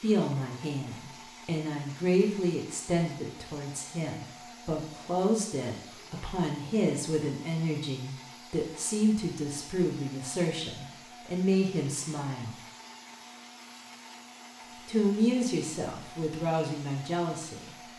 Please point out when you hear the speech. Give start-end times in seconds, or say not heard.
0.0-12.6, 14.8-17.8.